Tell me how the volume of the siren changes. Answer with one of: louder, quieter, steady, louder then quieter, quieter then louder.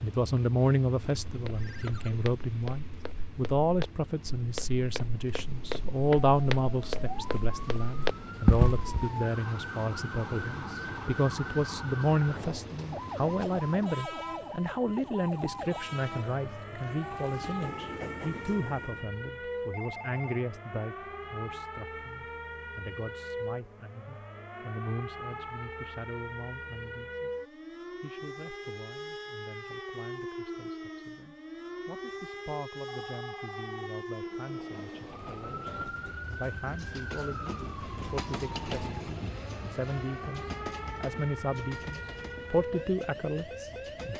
steady.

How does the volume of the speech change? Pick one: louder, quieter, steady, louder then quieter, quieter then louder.
quieter then louder.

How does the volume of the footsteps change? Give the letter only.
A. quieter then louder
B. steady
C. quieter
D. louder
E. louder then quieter
D.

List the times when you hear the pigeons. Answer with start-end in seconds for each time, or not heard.
not heard.